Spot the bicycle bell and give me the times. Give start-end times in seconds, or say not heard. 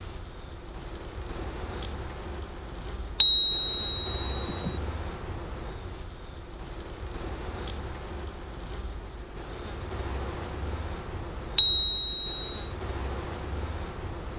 3.2-4.8, 11.6-12.6.